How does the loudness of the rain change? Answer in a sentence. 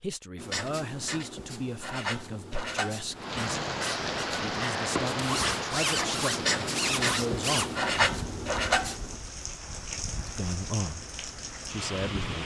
The volume of the rain goes down.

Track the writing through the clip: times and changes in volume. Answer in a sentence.
The writing can be heard from 0.3 to 9.2 s, getting louder.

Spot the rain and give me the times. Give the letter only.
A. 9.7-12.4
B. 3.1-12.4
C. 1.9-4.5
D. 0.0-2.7
B.